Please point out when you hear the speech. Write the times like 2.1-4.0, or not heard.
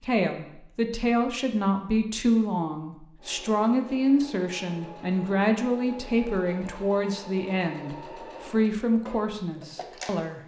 0.0-10.4.